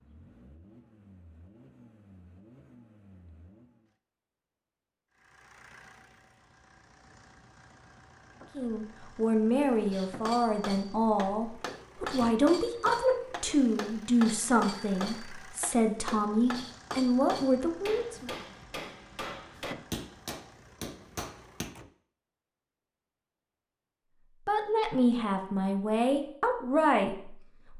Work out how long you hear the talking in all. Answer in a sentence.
You can hear the talking for 13 seconds altogether.